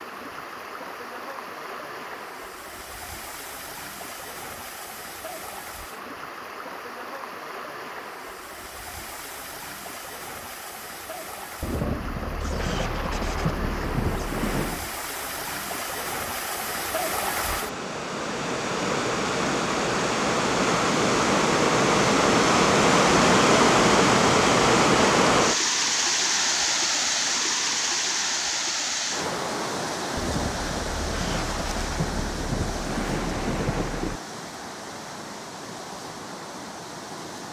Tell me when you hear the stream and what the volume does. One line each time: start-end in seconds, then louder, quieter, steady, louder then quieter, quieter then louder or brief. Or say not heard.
0.0-37.4 louder then quieter.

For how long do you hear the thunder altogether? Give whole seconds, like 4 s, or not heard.
7 s.